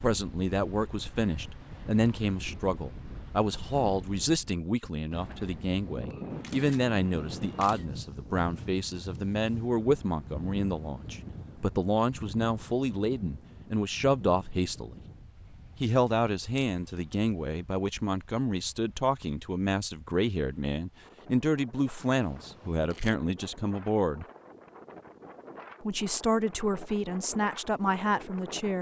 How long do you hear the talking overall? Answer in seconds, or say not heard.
26 s.